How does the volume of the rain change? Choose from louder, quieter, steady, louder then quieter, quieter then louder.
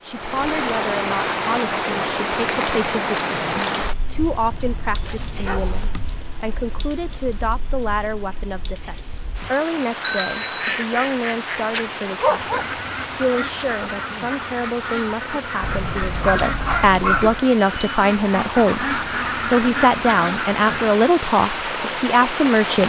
quieter then louder.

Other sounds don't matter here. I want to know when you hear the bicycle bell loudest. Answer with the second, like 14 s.
10 s.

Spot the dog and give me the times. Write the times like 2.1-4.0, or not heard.
4.1-6.0, 11.7-12.7, 15.6-17.4.